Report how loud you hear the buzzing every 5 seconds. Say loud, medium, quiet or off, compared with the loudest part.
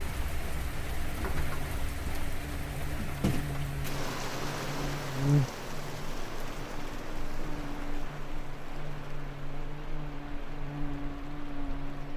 medium, loud, medium.